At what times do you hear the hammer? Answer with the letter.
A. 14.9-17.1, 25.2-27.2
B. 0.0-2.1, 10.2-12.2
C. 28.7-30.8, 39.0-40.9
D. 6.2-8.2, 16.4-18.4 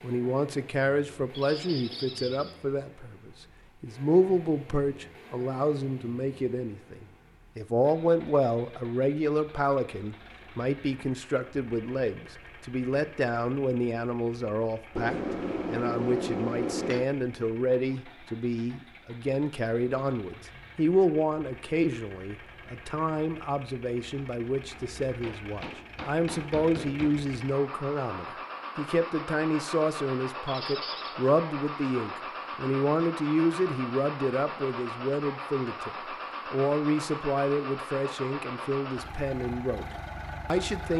A.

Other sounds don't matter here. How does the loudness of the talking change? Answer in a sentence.
The loudness of the talking stays about the same.